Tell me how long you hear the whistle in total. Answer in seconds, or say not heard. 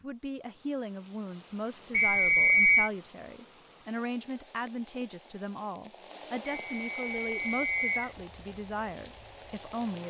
3 s.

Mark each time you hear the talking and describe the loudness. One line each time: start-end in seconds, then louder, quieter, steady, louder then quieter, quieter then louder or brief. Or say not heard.
0.0-10.0 steady.